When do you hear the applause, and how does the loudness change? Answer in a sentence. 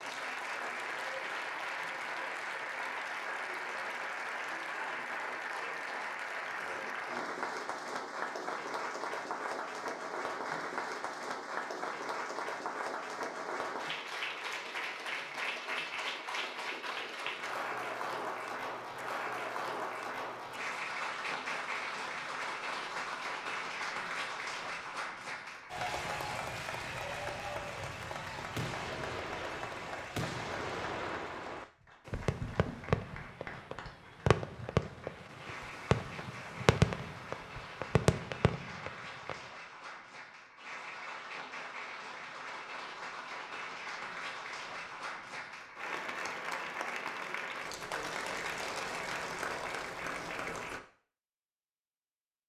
The applause can be heard from 0.0 to 50.8 s, getting quieter then louder.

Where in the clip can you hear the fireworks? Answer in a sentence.
You can hear the fireworks from 28.6 to 39.4 s.